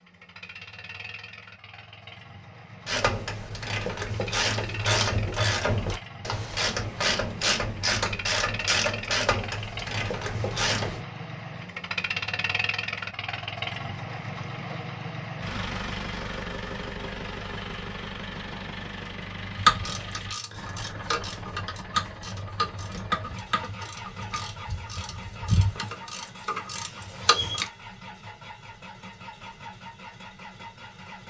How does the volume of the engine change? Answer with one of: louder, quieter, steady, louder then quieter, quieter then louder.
louder then quieter.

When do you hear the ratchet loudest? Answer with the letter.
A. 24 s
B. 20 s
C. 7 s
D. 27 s
B.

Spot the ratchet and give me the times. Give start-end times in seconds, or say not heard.
2.9-11.0, 19.6-27.7.